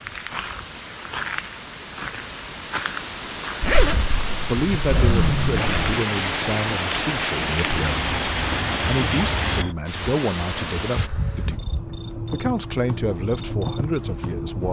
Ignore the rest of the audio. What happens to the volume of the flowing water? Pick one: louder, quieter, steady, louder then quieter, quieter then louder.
louder.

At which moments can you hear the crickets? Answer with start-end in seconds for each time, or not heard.
0.0-14.6.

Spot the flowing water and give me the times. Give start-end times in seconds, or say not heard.
0.0-11.1.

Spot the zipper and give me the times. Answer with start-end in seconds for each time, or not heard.
3.6-6.0.